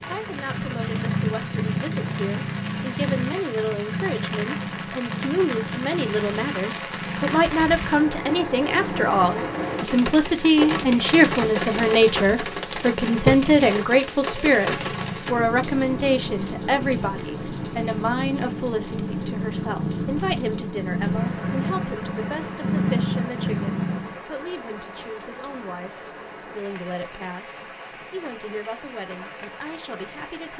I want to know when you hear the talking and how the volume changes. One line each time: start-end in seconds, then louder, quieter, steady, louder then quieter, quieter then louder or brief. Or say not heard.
0.0-30.5 louder then quieter.